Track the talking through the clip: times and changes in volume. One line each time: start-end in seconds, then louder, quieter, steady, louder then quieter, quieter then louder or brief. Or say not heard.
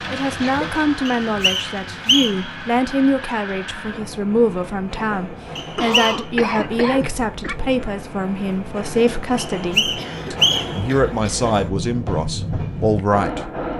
0.1-13.7 steady.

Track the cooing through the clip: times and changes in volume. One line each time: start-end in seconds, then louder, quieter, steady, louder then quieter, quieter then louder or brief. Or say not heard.
not heard.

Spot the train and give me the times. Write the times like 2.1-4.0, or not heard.
0.0-13.7.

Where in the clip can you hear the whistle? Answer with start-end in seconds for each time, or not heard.
1.1-2.5, 5.5-6.2, 9.3-10.8.